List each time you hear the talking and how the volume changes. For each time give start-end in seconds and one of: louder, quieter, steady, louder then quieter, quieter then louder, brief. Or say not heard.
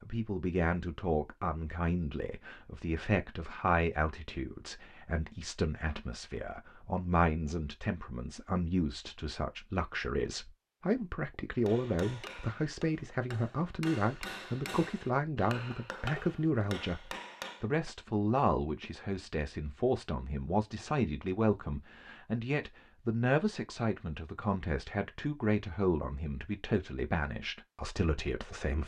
0.0-28.8 steady.